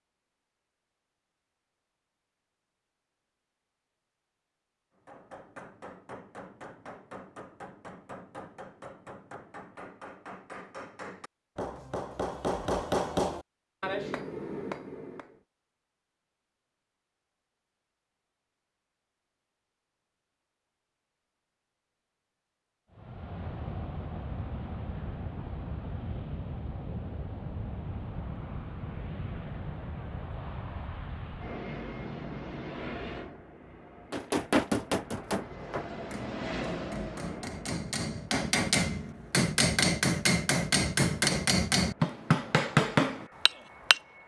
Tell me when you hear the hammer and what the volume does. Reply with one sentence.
The hammer can be heard from 5.0 to 15.4 s, getting louder; and from 34.1 to 44.0 s, getting quieter then louder.